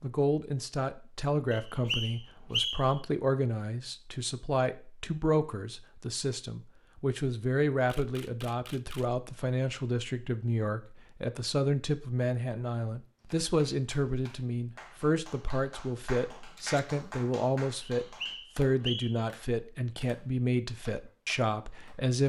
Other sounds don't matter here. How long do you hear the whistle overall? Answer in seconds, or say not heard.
3 s.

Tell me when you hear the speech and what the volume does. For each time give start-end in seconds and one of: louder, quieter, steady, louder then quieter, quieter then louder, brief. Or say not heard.
0.0-22.2 steady.